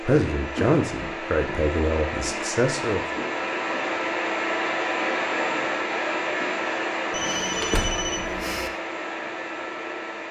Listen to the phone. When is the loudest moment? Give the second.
8 s.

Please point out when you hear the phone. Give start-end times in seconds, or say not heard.
0.6-1.6, 7.1-8.7.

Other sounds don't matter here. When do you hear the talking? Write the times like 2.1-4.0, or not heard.
0.0-3.0.